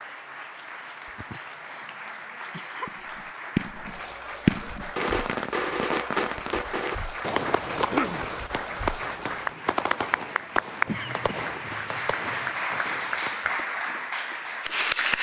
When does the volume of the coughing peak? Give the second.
8 s.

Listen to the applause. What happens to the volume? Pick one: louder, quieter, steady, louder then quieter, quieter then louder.
louder.